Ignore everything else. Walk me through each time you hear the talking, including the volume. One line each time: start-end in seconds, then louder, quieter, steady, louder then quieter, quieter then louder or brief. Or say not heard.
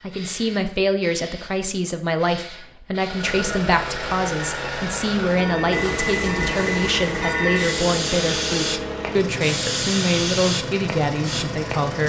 0.0-12.0 steady.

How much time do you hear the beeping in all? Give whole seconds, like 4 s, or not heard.
2 s.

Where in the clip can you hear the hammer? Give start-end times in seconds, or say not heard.
not heard.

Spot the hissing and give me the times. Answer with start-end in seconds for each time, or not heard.
0.0-12.0.